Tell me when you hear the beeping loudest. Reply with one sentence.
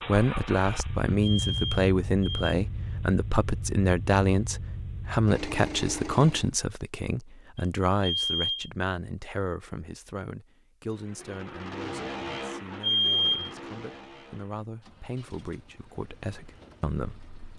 The volume of the beeping peaks at 13 seconds.